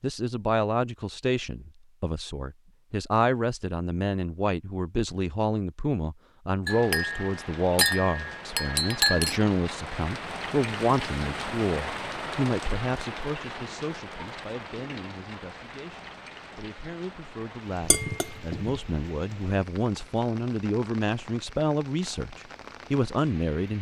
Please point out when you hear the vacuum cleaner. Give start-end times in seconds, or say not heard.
not heard.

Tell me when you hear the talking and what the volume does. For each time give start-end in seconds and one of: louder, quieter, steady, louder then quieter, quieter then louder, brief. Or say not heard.
0.0-23.7 quieter then louder.